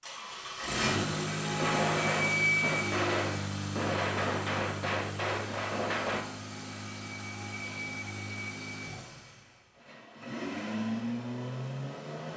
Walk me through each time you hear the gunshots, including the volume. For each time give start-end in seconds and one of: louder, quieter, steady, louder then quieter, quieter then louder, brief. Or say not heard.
1.6-6.2 steady.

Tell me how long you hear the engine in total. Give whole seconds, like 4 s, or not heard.
12 s.